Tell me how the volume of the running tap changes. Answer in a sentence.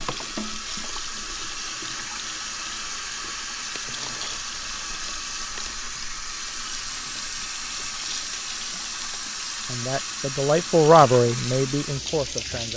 The volume of the running tap stays about the same.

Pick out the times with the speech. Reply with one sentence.
The speech can be heard from 9.7 to 12.7 s.